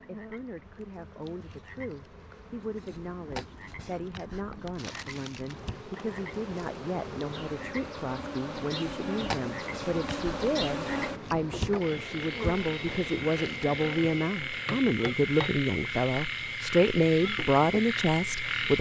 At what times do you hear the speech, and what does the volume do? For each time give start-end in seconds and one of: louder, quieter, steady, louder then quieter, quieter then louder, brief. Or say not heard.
0.1-18.7 louder.